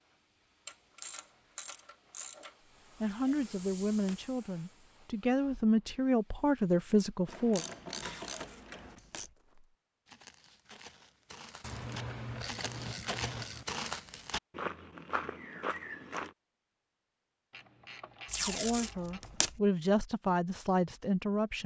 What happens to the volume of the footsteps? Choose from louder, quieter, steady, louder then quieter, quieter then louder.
louder.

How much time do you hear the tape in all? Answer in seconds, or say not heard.
4 s.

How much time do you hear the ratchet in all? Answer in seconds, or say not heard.
8 s.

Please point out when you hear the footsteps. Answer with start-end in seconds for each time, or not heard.
9.2-16.4.